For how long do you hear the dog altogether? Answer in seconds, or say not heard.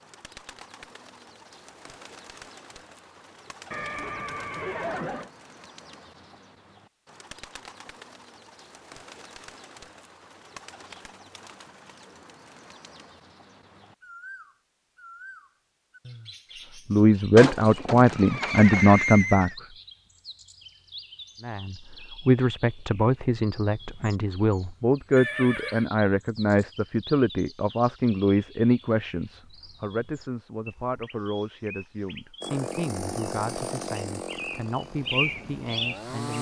not heard.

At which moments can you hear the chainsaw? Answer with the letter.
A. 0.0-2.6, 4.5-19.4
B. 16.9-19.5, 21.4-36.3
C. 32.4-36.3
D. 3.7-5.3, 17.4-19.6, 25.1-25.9
C.